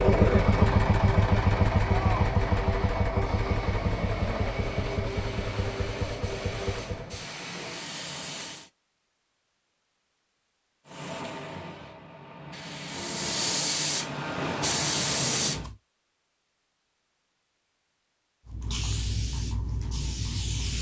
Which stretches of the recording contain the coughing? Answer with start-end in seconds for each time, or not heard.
not heard.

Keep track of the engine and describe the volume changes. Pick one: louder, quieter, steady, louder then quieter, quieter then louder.
quieter.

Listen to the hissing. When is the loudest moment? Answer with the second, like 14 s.
15 s.